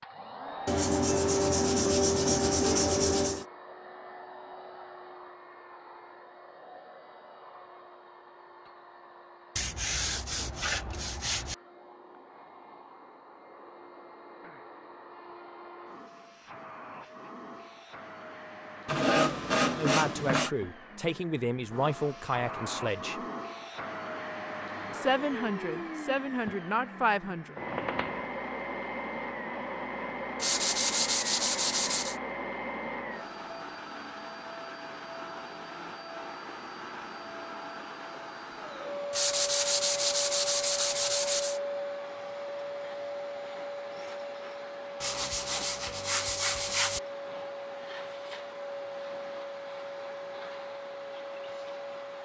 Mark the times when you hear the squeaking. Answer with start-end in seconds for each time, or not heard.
27.6-28.2.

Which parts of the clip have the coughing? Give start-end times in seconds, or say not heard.
not heard.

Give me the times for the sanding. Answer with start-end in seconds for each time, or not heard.
0.7-3.5, 9.6-11.6, 18.9-20.5, 30.4-32.1, 39.1-41.6, 45.0-47.0.